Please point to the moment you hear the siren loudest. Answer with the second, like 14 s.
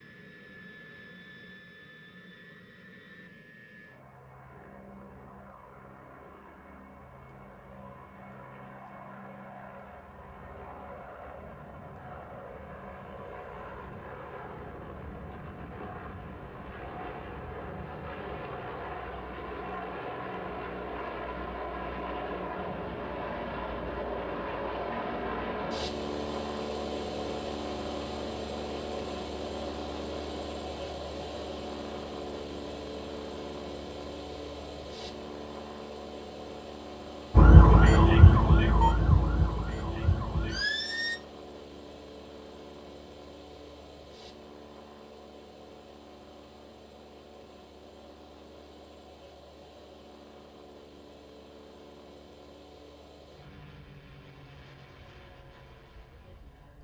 38 s.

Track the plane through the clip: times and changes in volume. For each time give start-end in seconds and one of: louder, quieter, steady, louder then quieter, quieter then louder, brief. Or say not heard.
0.0-56.7 louder then quieter.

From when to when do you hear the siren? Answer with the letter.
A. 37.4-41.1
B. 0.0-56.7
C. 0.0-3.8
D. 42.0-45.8
A.